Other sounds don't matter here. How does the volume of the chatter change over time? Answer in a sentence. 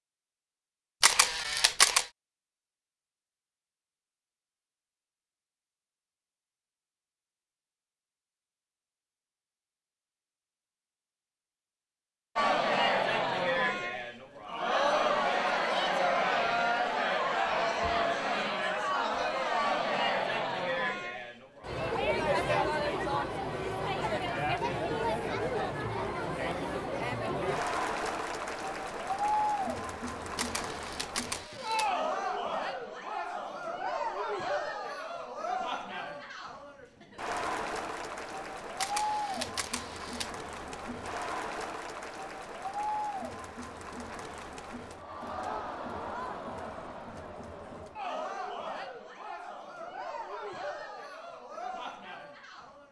The volume of the chatter goes down.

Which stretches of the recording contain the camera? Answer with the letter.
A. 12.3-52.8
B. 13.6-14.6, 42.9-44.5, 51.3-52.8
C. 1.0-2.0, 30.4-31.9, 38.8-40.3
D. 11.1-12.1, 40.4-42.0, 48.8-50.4
C.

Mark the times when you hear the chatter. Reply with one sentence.
The chatter can be heard from 12.3 to 52.8 s.